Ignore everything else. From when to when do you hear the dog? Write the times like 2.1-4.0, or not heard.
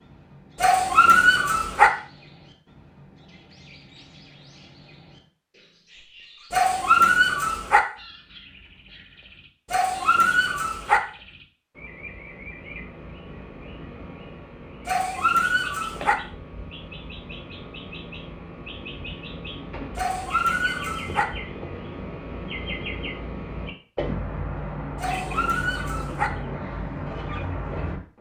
0.6-1.9, 6.5-7.8, 9.7-11.0, 14.8-16.1, 19.9-21.2, 24.9-26.3.